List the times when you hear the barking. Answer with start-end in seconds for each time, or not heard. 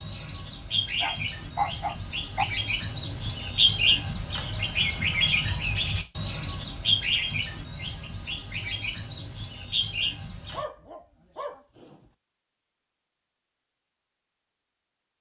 1.0-2.5, 10.5-12.1.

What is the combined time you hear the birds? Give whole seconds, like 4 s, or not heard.
11 s.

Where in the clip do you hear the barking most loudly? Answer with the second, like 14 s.
2 s.